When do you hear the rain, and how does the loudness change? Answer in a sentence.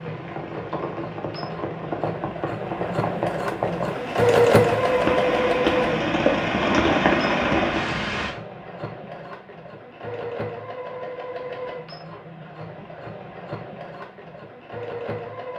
You can hear the rain from 0.0 to 8.3 s, getting louder.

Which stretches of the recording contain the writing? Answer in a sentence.
You can't hear the writing here.